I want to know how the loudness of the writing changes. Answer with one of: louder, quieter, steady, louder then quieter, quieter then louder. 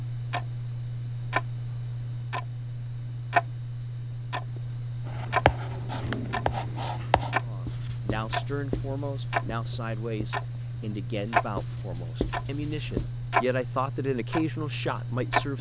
quieter then louder.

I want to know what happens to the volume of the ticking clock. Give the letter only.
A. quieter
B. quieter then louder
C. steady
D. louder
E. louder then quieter
C.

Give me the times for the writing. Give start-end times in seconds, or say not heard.
5.1-13.1.